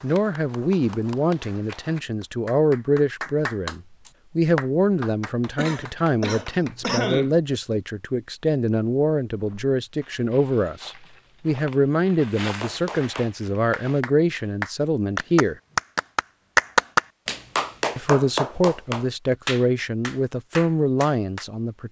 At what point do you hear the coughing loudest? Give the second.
7 s.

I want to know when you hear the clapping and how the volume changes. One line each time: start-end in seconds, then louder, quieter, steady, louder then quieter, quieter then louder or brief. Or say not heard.
0.0-7.0 louder then quieter
12.4-21.4 louder then quieter.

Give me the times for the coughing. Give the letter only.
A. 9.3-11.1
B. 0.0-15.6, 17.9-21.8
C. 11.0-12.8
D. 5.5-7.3
D.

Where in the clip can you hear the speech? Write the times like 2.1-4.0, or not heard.
0.0-15.6, 17.9-21.8.